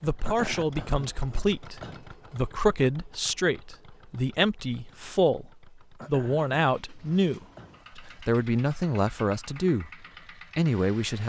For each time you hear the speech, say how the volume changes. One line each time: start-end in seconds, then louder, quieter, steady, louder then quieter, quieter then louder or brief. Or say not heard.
0.0-9.9 steady
10.6-11.2 brief.